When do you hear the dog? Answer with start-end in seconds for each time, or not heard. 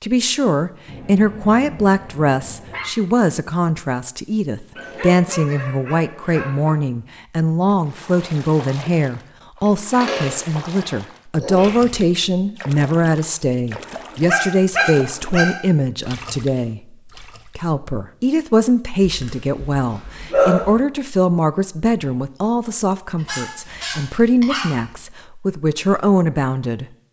0.8-2.9, 4.8-6.7, 9.9-11.8, 14.2-15.6, 19.0-20.8, 23.1-24.9.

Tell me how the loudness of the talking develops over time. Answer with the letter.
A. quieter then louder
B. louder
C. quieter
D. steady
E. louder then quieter
D.